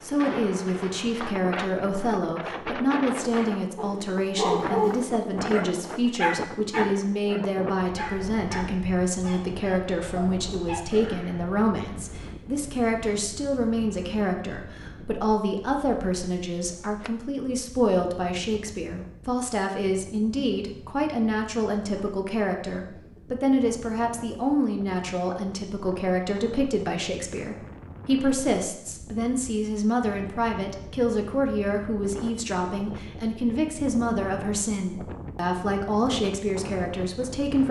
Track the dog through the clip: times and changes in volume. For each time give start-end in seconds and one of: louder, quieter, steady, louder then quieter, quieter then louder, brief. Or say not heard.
3.8-11.4 quieter.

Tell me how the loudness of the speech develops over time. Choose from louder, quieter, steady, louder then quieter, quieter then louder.
steady.